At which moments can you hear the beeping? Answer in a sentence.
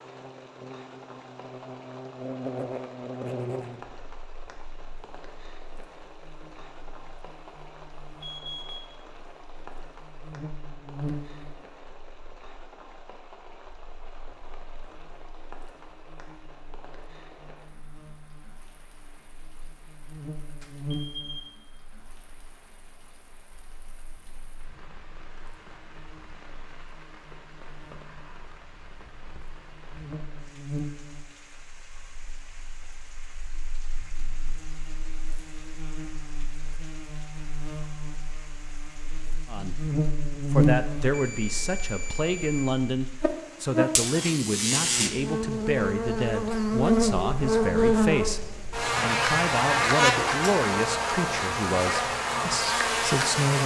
You can hear the beeping from 8.2 to 8.8 s, from 20.6 to 21.5 s and from 41.1 to 42.9 s.